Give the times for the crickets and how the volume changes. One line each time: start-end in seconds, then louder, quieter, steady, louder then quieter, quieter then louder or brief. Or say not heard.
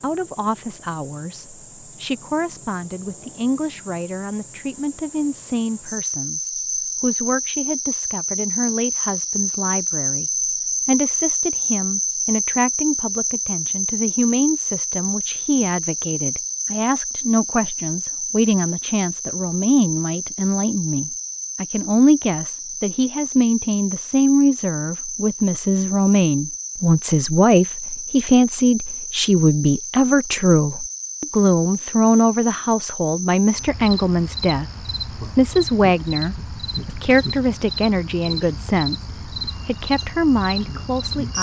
0.0-41.3 louder then quieter.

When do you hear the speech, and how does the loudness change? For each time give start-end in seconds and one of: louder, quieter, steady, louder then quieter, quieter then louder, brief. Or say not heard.
0.0-34.6 louder
35.4-41.3 quieter then louder.